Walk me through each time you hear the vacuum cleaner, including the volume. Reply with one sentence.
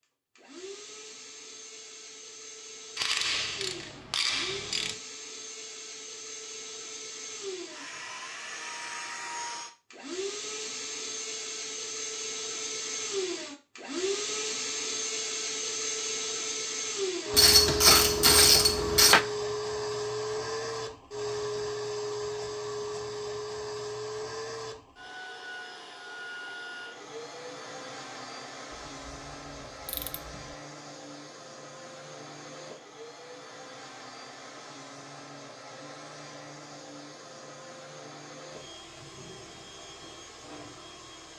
The vacuum cleaner can be heard from 0.0 to 41.3 s, getting louder then quieter.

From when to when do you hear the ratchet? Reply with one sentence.
You can hear the ratchet from 3.0 to 5.0 s, from 17.3 to 19.2 s and from 29.9 to 30.4 s.